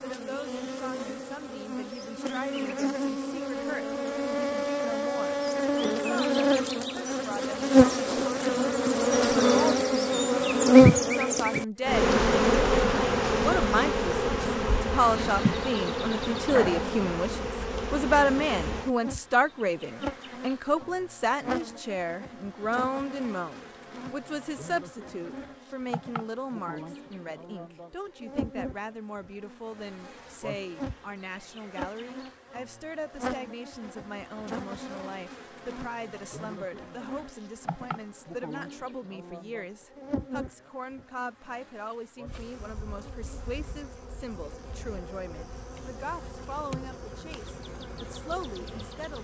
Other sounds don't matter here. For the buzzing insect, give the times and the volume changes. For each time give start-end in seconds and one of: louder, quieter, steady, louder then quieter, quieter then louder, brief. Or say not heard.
0.0-49.1 quieter.